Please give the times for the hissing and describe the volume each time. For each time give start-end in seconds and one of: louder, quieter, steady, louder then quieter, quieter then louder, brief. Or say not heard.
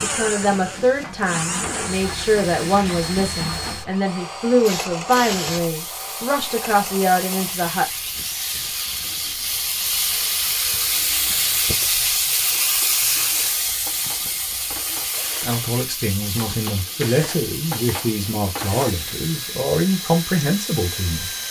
0.0-21.4 louder then quieter.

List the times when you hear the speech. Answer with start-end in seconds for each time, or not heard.
0.0-7.8, 15.4-21.4.